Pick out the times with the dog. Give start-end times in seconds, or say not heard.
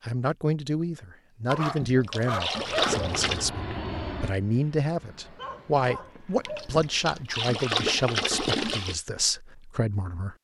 1.4-3.1, 5.2-6.8.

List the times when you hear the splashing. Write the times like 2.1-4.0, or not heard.
1.5-3.5, 6.5-8.9.